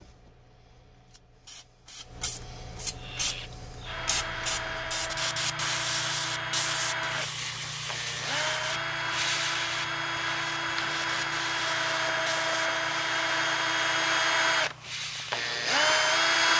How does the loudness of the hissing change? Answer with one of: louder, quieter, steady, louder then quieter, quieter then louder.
louder then quieter.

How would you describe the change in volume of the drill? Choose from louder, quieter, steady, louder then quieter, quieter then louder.
louder.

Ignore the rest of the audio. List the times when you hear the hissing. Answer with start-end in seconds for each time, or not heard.
0.0-16.5.